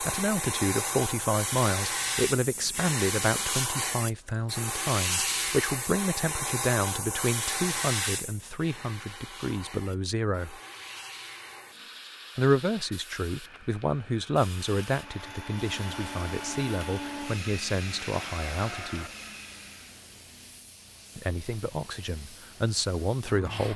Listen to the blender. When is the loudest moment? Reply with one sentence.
The loudest moment of the blender is at 17 seconds.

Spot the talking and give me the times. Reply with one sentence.
You can hear the talking from 0.0 to 10.6 s, from 12.3 to 19.1 s and from 21.1 to 23.7 s.